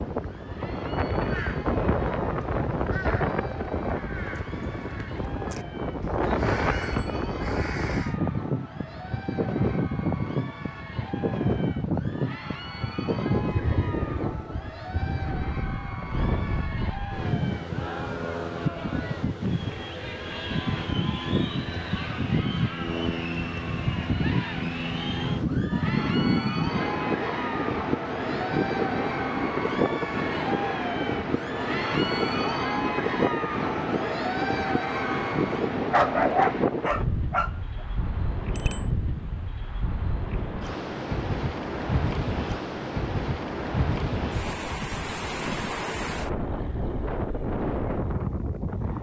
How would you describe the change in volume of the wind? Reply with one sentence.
The loudness of the wind stays about the same.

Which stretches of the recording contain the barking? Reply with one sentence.
You can hear the barking from 35.9 to 37.5 s.